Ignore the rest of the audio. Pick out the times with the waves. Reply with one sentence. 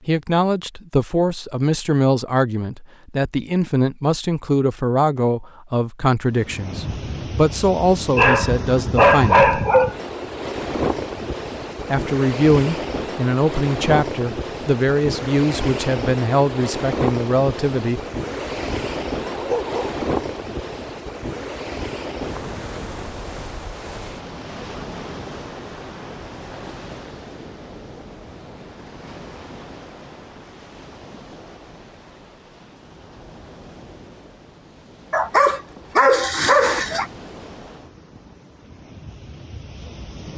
The waves can be heard from 6.2 to 40.3 s.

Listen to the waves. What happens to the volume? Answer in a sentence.
The volume of the waves goes down.